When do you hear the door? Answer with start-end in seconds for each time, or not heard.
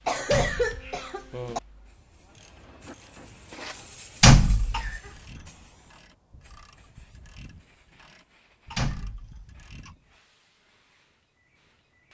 0.3-0.8, 4.2-4.9, 8.8-9.5.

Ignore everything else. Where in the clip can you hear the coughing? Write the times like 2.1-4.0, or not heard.
0.1-1.6, 4.7-5.5, 8.7-9.9.